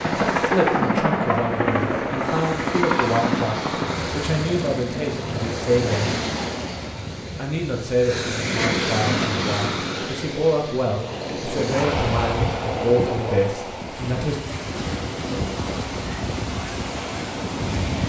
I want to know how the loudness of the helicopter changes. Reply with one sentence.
The loudness of the helicopter goes down.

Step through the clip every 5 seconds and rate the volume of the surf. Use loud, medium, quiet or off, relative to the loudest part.
medium, loud, loud, loud.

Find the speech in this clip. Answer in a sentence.
The speech can be heard from 0.0 to 6.2 s and from 7.3 to 14.3 s.